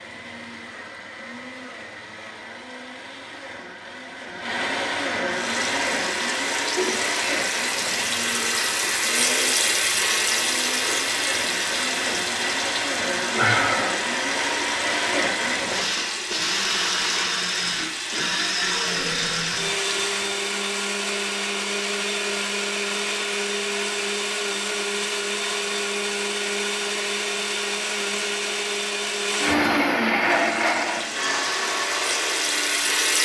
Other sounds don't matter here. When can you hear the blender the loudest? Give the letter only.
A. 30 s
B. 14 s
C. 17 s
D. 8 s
A.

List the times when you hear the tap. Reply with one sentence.
The tap can be heard from 5.2 to 20.4 s and from 30.3 to 33.2 s.